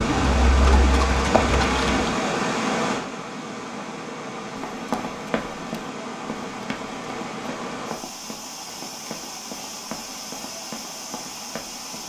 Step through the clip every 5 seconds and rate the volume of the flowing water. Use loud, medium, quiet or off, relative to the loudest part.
loud, medium, medium.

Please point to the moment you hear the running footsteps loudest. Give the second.
5 s.